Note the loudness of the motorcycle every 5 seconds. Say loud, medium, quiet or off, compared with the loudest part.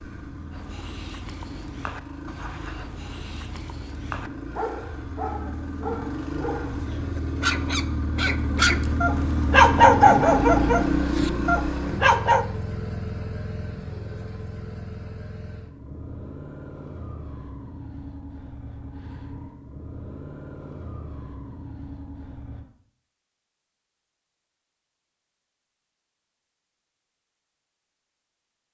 quiet, loud, loud, quiet, quiet, off.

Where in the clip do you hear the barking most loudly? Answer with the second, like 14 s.
10 s.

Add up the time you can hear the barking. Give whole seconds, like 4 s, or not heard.
12 s.